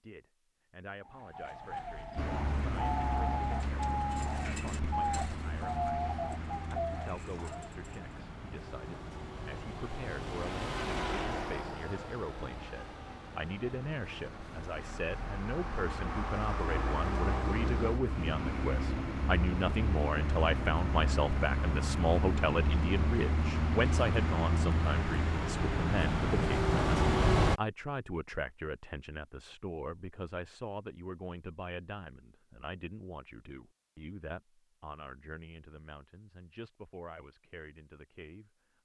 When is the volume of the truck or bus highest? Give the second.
27 s.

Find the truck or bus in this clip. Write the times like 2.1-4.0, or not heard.
2.1-27.6.